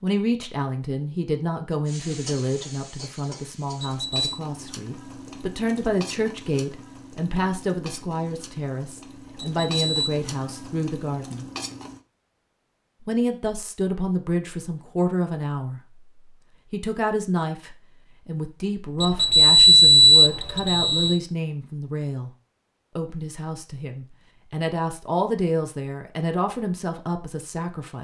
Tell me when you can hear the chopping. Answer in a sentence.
You can't hear the chopping here.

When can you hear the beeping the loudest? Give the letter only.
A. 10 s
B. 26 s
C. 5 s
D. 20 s
D.